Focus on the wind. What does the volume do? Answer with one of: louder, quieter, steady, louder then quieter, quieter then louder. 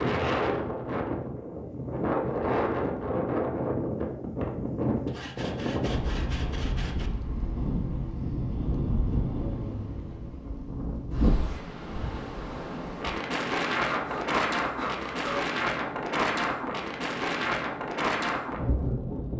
steady.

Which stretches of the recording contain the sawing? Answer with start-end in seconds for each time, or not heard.
5.0-7.1, 13.8-15.5.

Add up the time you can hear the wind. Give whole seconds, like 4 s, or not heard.
19 s.